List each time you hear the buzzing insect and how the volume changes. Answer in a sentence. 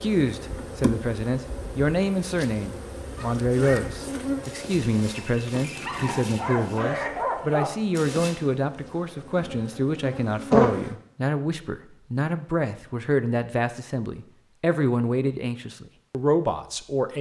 You can hear the buzzing insect from 0.0 to 10.9 s, getting quieter then louder.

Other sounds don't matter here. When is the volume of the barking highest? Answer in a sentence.
The volume of the barking peaks at 7 seconds.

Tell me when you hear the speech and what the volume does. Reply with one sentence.
The speech can be heard from 0.0 to 17.1 s, at a steady volume.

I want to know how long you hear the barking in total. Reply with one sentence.
You can hear the barking for 5 seconds altogether.